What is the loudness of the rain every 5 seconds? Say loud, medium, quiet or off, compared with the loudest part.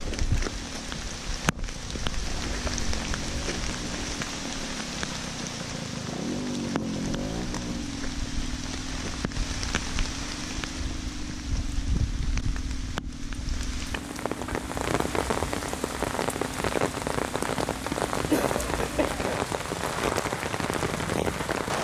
medium, medium, medium, loud, loud.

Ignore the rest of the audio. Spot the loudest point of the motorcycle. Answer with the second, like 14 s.
7 s.